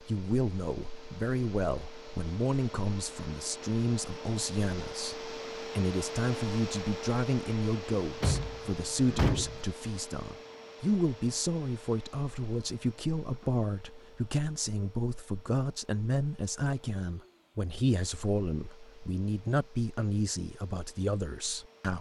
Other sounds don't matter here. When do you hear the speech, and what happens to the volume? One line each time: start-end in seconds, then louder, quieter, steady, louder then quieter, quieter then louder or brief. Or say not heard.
0.0-21.9 steady.